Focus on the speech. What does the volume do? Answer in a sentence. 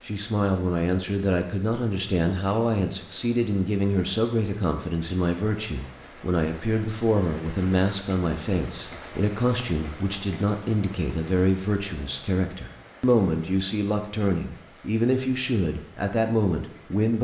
The volume of the speech stays about the same.